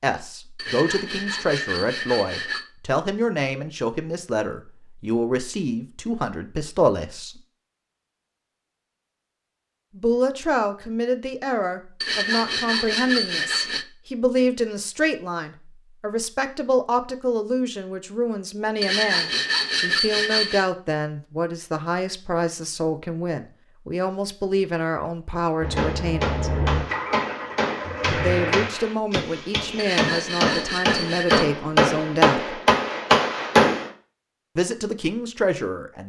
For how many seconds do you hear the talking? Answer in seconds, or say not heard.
30 s.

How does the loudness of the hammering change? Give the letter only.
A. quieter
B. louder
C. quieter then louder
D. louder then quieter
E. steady
B.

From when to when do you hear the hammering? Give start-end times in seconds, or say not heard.
25.6-33.9.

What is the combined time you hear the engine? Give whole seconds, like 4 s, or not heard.
3 s.